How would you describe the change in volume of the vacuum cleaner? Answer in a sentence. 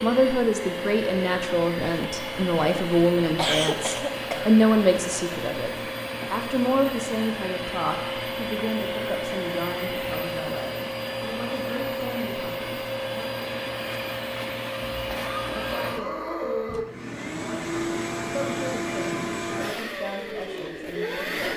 The loudness of the vacuum cleaner stays about the same.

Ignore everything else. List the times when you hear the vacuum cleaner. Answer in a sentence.
You can hear the vacuum cleaner from 0.0 to 21.5 s.